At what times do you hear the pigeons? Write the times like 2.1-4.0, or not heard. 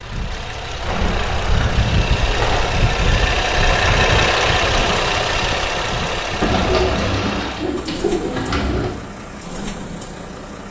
0.8-2.6, 6.4-8.9.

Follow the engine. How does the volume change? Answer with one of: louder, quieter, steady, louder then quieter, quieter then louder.
louder then quieter.